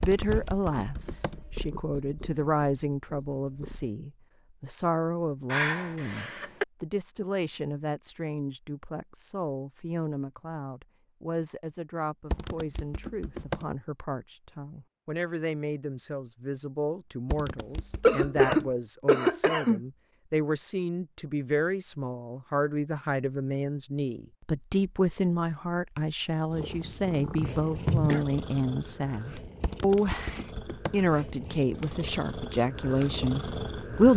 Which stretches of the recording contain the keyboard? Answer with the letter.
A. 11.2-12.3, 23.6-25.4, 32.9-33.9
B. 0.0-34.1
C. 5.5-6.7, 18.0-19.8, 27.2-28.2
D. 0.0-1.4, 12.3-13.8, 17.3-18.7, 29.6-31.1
D.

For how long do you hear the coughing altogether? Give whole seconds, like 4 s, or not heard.
4 s.